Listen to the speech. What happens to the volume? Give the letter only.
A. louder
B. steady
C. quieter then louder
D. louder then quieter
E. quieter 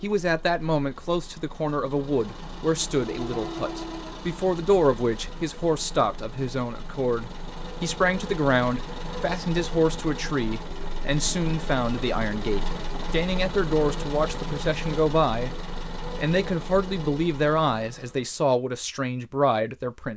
B.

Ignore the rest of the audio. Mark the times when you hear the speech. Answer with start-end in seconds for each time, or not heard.
0.0-15.5, 16.1-20.1.